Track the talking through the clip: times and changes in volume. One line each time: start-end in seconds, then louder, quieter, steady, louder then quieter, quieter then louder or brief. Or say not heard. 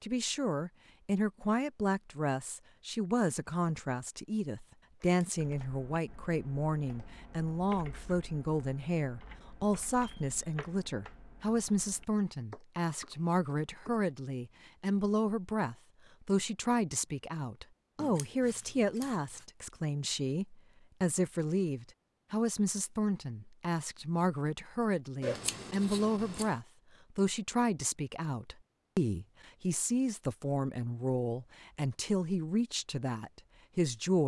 0.0-34.2 steady.